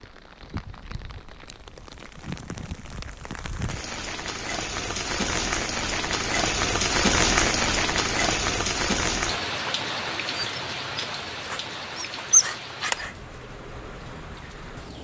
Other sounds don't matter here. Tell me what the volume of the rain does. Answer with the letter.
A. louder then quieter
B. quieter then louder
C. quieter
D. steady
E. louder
A.